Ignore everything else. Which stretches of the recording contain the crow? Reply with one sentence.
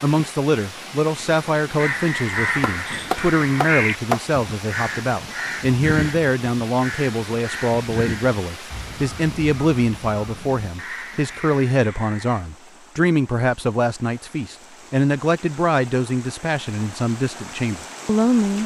You can hear the crow from 1.8 to 12.4 s.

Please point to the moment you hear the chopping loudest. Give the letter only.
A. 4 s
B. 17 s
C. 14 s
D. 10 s
A.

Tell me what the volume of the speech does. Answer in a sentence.
The volume of the speech stays about the same.